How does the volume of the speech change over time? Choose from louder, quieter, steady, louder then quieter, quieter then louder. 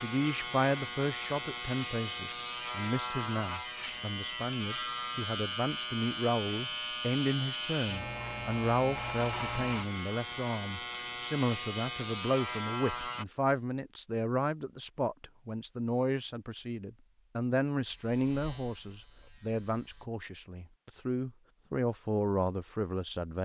steady.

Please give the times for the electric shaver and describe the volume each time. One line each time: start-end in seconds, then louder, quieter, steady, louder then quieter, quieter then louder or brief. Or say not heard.
0.0-13.2 steady
17.9-20.1 brief.